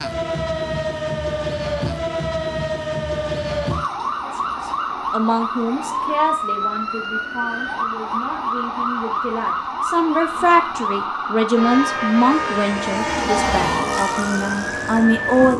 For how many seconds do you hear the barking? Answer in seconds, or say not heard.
not heard.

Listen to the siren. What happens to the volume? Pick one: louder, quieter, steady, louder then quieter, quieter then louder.
steady.